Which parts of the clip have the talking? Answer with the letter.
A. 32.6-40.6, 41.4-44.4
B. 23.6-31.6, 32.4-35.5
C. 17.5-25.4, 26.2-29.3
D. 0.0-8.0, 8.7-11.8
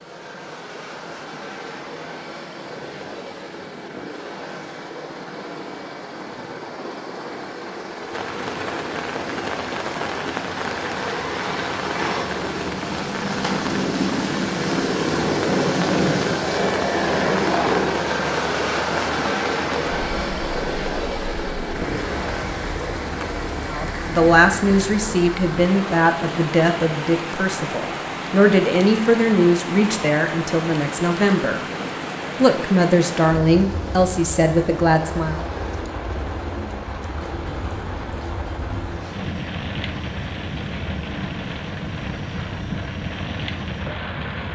B.